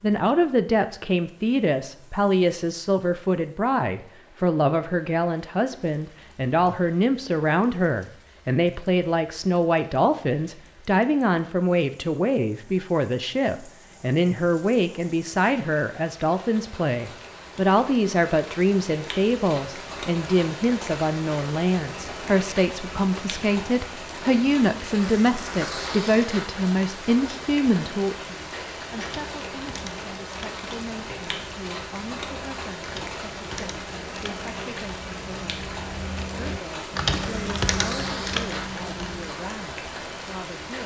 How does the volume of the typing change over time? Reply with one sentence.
The volume of the typing goes up.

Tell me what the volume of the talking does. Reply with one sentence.
The loudness of the talking goes down.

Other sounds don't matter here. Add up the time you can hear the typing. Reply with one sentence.
You can hear the typing for 10 seconds altogether.